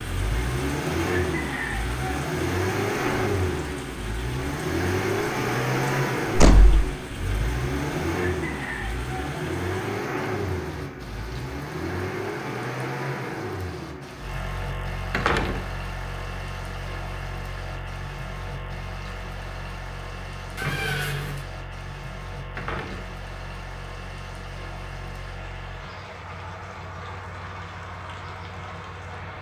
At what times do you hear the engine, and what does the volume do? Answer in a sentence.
You can hear the engine from 0.0 to 29.3 s, getting quieter.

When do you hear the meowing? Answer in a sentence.
The meowing can be heard from 20.6 to 21.4 s.